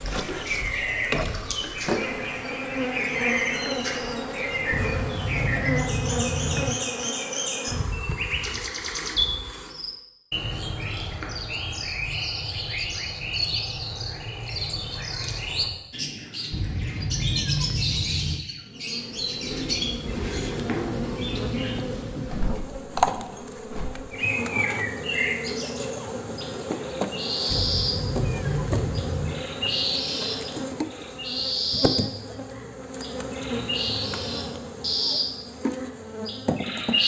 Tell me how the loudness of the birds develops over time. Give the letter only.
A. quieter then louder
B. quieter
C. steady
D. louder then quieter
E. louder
C.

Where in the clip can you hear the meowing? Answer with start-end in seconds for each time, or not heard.
4.7-6.7, 16.5-18.4, 27.4-29.4.